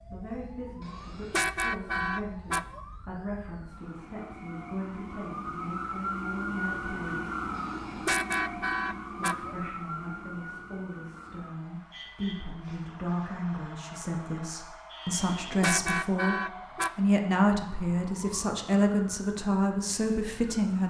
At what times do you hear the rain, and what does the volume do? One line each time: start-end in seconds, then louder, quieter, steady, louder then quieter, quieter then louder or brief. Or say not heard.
not heard.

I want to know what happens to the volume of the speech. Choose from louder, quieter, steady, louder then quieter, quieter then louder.
louder.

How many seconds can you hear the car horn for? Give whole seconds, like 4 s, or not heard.
6 s.